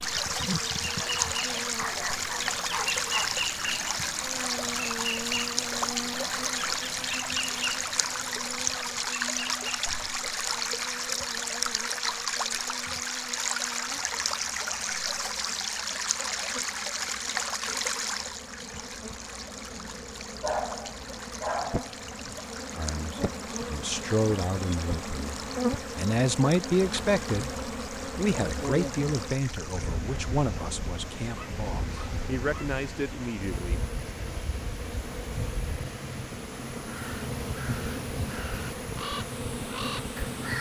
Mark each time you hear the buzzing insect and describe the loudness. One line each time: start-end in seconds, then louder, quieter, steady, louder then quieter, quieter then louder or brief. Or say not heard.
0.0-40.5 quieter then louder.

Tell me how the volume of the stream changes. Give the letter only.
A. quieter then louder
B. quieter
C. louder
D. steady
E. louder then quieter
B.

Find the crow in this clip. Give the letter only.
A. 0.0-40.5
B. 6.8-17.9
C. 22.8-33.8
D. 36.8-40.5
D.